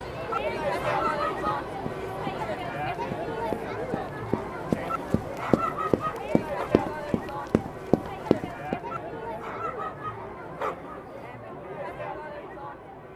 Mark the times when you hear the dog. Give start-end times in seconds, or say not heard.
0.3-1.6, 4.8-6.7, 8.9-11.2.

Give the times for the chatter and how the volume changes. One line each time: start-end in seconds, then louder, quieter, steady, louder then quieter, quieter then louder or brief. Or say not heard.
0.0-13.1 quieter.